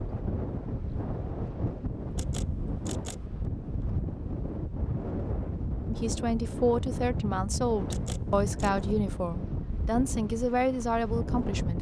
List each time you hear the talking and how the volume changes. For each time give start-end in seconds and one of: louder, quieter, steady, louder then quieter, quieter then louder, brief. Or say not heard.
5.8-11.7 steady.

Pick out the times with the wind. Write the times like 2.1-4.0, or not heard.
0.0-11.7.